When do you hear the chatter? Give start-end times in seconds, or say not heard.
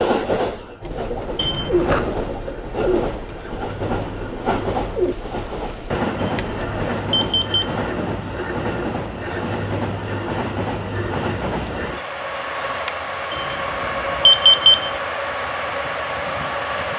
not heard.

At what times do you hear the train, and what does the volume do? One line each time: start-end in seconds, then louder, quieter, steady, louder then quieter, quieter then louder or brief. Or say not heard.
0.0-16.9 steady.